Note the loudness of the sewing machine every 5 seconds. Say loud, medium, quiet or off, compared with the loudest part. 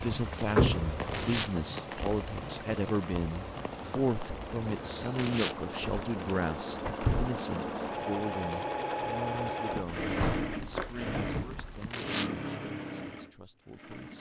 medium, loud, loud.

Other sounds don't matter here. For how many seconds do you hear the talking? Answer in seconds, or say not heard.
14 s.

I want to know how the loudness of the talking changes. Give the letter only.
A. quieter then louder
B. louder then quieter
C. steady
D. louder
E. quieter
E.